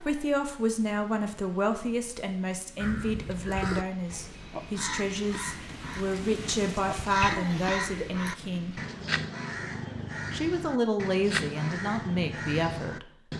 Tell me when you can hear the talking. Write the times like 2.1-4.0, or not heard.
0.0-8.8, 10.3-13.1.